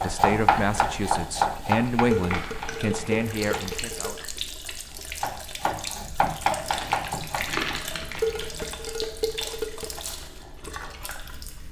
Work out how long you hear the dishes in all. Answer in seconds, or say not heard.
4 s.